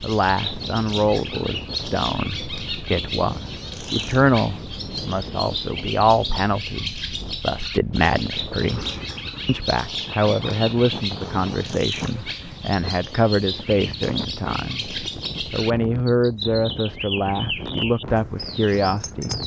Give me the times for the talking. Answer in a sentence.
The talking can be heard from 0.0 to 19.4 s.